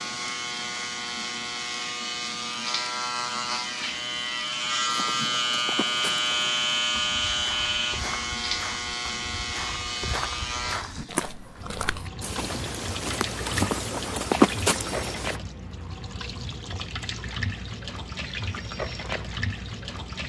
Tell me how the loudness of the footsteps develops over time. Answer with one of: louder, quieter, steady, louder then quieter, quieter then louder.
louder.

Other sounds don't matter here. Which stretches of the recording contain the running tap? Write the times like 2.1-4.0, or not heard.
0.0-20.2.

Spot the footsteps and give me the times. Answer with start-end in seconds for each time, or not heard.
4.8-15.4.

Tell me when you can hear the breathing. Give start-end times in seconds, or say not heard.
not heard.